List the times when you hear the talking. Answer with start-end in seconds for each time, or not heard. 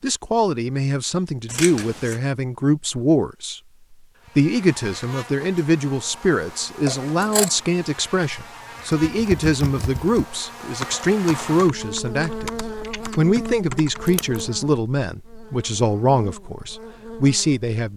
0.0-3.6, 4.3-12.5, 13.2-17.9.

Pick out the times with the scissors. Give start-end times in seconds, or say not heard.
1.4-2.2, 6.8-7.5, 13.9-14.6.